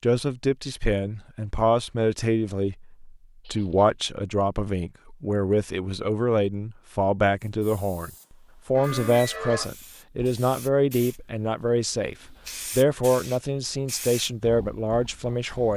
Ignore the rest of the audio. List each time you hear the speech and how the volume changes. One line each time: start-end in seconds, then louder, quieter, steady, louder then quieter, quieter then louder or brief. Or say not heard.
0.0-15.7 steady.